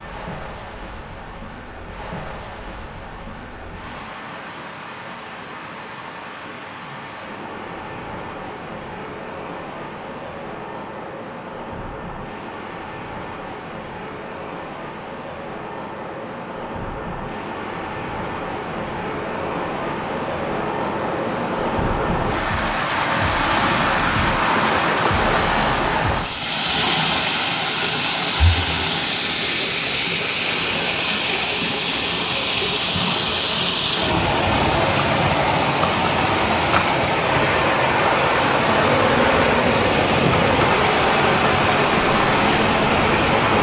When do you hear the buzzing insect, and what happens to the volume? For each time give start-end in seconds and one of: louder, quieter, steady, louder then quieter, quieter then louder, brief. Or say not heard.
38.6-43.5 steady.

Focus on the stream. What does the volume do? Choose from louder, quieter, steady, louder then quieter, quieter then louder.
louder.